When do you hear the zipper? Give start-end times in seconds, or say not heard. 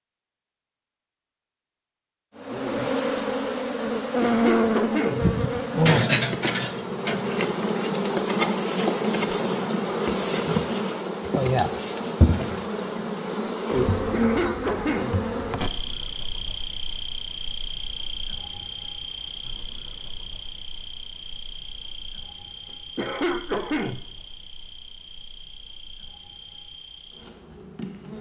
not heard.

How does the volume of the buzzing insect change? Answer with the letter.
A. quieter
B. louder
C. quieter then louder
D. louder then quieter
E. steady
A.